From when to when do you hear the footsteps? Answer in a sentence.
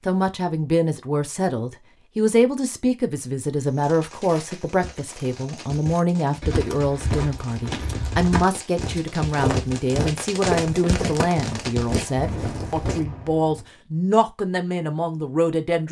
The footsteps can be heard from 3.6 to 13.1 s.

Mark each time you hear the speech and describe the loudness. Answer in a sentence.
You can hear the speech from 0.1 to 15.8 s, at a steady volume.